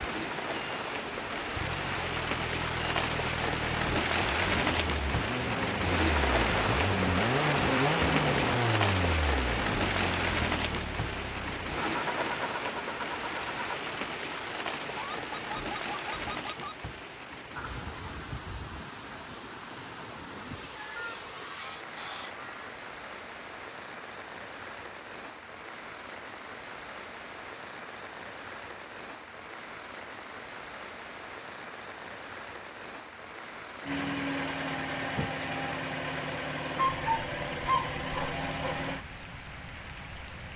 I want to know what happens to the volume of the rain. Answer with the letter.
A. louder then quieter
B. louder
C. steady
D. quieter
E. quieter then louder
D.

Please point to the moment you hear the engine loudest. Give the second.
8 s.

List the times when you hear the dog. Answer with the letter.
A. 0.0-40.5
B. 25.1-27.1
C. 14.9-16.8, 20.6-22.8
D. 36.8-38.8
D.